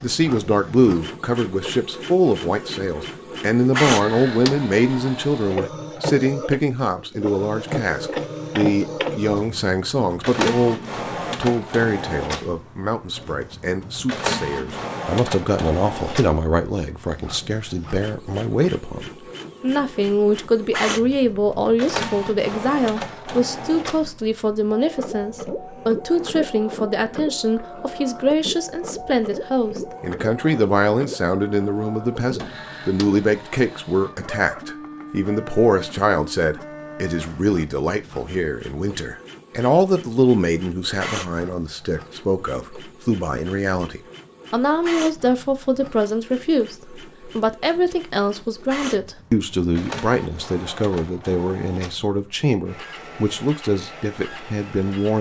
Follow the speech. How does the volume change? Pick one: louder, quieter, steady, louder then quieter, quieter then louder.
steady.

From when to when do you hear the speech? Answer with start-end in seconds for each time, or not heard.
0.0-55.1.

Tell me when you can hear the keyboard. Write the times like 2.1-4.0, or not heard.
not heard.